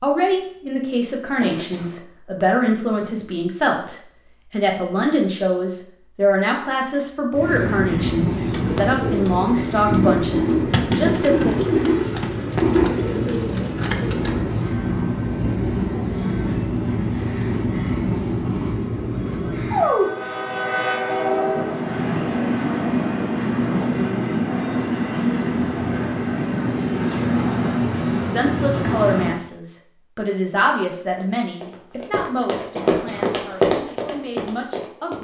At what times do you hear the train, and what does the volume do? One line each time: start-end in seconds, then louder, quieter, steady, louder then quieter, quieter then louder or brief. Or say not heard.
7.3-29.4 steady.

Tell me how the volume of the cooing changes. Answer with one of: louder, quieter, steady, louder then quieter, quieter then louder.
steady.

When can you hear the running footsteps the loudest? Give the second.
34 s.